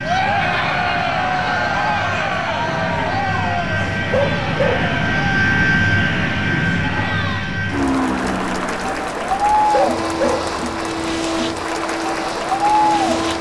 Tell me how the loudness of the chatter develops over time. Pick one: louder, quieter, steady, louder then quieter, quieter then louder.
quieter then louder.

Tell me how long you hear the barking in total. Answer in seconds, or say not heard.
2 s.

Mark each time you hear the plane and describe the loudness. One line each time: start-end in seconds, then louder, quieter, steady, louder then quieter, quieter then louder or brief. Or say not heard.
0.0-13.3 louder then quieter.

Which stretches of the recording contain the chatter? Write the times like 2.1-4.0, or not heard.
0.0-13.3.